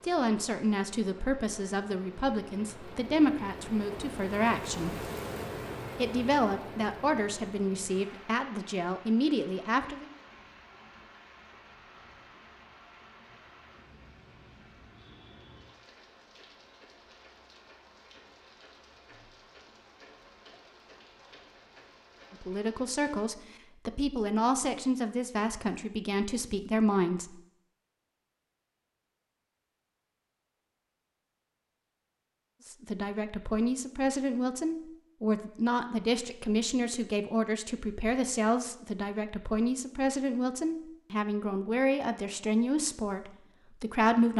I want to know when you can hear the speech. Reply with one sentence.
The speech can be heard from 0.0 to 5.0 s, from 6.0 to 10.1 s, from 22.3 to 27.4 s and from 32.6 to 44.3 s.